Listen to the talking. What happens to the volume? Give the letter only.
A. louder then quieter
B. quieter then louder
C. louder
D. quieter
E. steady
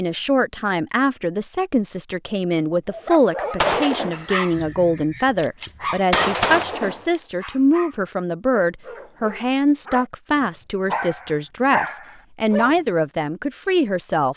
E.